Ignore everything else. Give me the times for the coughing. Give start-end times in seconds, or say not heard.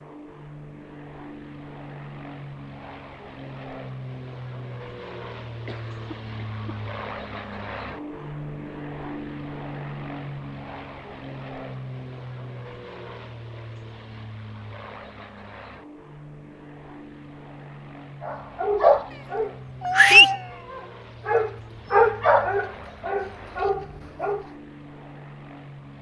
5.5-6.8.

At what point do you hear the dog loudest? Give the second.
20 s.